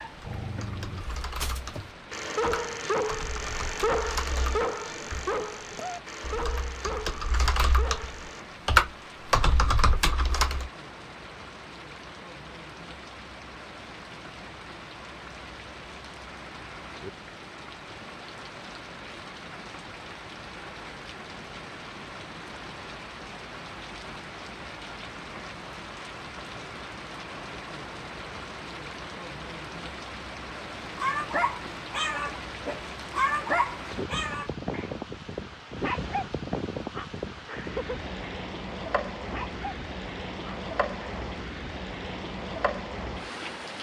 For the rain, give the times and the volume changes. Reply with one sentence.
You can hear the rain from 0.0 to 43.7 s, getting louder.